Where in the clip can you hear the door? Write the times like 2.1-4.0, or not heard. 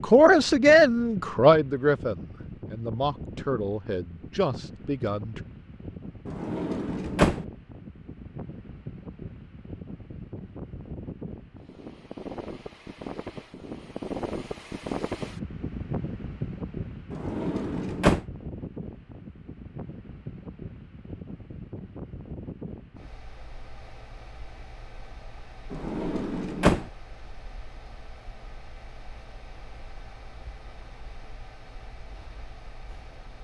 6.2-7.5, 17.1-18.2, 25.7-26.9.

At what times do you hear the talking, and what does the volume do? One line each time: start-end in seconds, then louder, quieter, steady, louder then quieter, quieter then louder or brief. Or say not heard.
0.0-5.4 quieter.